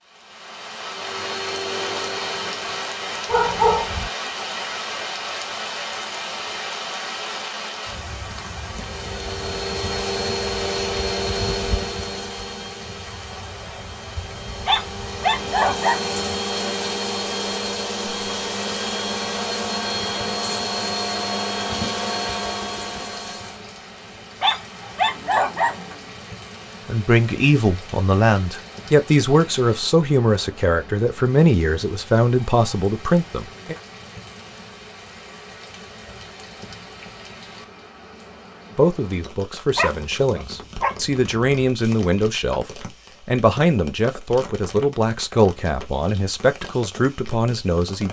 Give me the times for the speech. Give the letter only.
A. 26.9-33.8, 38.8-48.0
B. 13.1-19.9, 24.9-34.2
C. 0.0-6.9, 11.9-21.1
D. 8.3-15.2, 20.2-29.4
A.